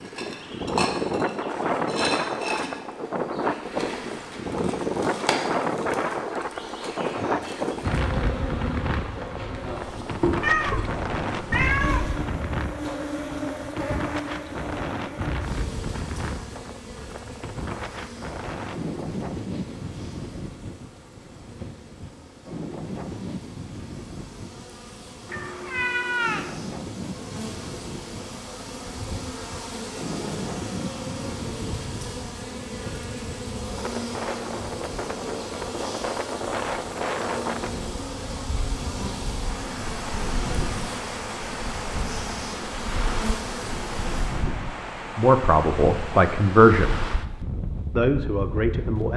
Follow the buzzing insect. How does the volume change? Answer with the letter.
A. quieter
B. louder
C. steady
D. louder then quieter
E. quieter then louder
E.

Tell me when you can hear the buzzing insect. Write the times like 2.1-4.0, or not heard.
0.0-44.5.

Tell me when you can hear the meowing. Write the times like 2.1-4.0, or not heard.
10.4-12.2, 25.2-26.5.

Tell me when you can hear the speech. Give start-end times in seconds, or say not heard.
45.1-47.0, 48.0-49.1.